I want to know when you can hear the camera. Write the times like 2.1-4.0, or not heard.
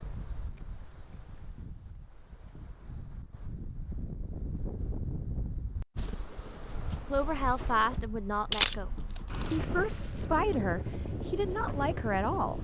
8.5-9.6.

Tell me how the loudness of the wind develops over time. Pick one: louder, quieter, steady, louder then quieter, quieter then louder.
louder.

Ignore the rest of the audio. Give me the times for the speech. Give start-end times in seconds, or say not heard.
7.1-12.5.